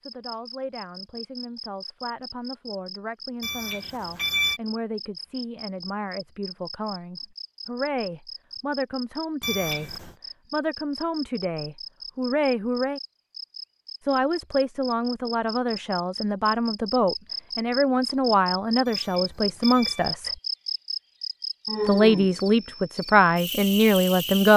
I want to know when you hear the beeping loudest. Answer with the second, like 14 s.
4 s.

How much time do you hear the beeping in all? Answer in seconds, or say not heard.
3 s.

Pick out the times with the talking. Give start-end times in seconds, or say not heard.
0.1-13.0, 14.0-20.3, 21.9-24.5.